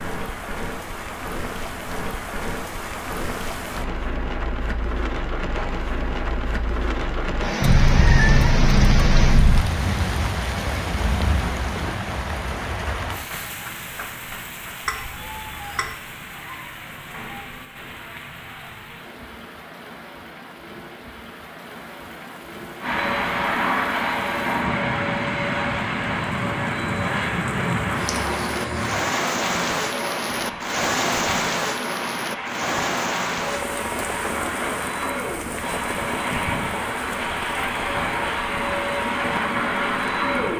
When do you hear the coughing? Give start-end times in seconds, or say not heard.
not heard.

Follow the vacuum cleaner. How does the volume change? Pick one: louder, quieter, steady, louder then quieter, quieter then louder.
quieter then louder.